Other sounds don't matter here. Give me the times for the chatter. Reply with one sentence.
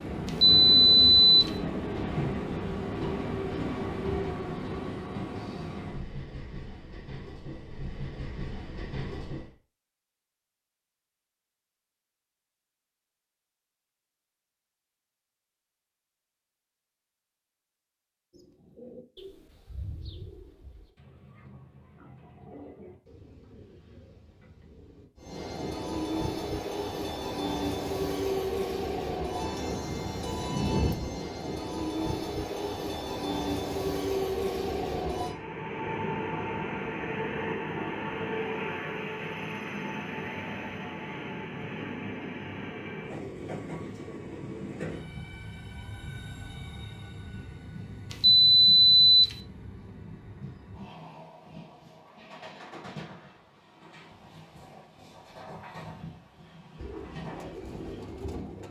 The chatter can't be heard in this clip.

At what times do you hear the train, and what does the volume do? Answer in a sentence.
The train can be heard from 0.0 to 9.5 s, getting quieter; and from 25.1 to 58.6 s, getting quieter.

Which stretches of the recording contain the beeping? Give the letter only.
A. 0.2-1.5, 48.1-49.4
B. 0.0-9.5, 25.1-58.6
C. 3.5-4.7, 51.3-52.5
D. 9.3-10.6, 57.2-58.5
A.